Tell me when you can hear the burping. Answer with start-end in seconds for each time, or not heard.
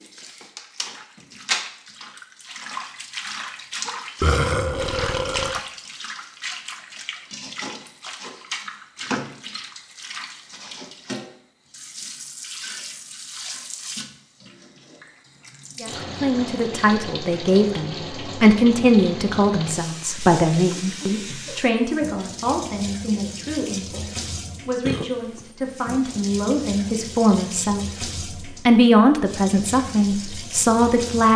4.2-5.6, 24.9-25.4.